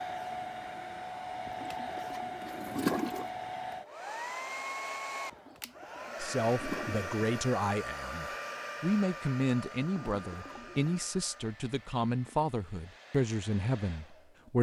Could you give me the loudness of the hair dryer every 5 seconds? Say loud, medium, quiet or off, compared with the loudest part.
loud, loud, quiet.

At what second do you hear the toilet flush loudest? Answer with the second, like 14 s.
3 s.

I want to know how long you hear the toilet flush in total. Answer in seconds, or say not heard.
5 s.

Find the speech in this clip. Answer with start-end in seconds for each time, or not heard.
6.2-14.5.